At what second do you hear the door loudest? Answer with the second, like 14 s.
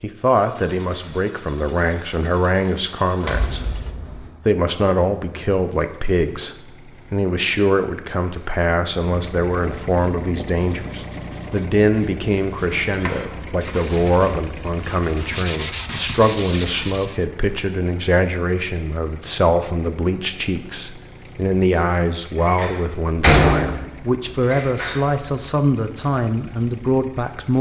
23 s.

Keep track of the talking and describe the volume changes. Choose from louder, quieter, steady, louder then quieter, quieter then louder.
steady.